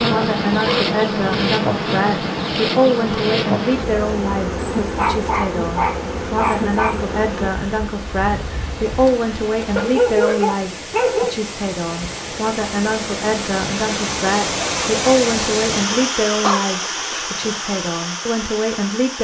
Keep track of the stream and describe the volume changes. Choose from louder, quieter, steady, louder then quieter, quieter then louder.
louder.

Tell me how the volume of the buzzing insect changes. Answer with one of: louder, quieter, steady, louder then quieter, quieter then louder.
quieter.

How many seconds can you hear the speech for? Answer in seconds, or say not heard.
19 s.